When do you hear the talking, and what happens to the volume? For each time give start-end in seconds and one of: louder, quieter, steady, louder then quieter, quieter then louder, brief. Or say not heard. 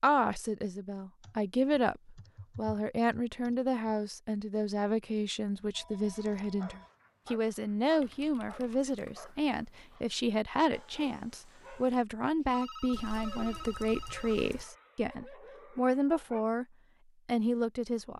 0.0-16.6 steady
17.2-18.1 brief.